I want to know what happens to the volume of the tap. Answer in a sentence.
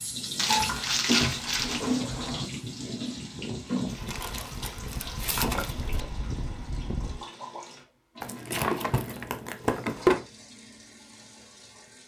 The volume of the tap goes down.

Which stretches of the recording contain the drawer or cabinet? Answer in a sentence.
The drawer or cabinet can be heard from 0.5 to 2.5 s, from 5.2 to 6.2 s and from 8.5 to 10.2 s.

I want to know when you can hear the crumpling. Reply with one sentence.
You can hear the crumpling from 0.3 to 2.0 s, from 4.0 to 5.8 s and from 8.2 to 10.1 s.